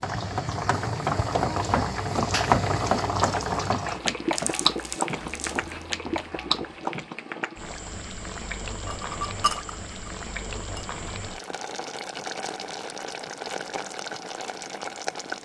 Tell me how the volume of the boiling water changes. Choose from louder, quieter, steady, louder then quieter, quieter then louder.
quieter.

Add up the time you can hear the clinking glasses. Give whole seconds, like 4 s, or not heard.
2 s.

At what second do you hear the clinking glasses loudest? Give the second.
9 s.